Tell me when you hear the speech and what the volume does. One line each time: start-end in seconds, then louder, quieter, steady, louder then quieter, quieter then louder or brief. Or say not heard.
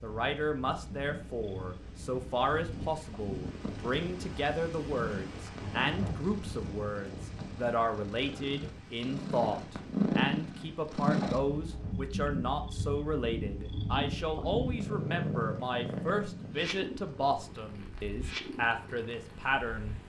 0.0-20.0 steady.